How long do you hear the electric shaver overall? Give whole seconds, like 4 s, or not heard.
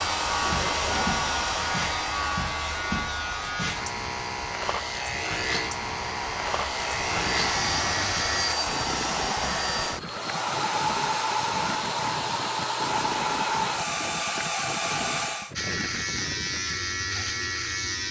11 s.